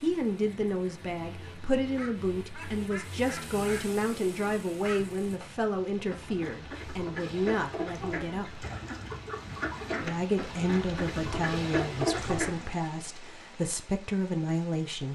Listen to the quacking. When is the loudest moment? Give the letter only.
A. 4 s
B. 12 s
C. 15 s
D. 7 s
B.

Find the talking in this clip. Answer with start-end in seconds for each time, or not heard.
0.0-8.7, 10.0-15.1.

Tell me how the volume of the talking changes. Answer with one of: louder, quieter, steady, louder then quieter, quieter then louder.
steady.